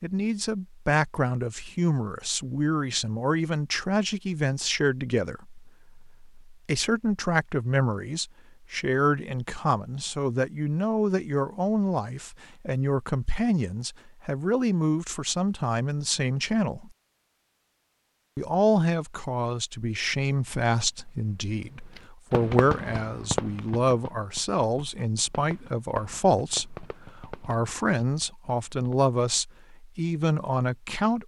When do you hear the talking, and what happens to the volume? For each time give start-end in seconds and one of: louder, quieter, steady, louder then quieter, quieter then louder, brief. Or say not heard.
0.0-16.9 steady
18.4-31.2 steady.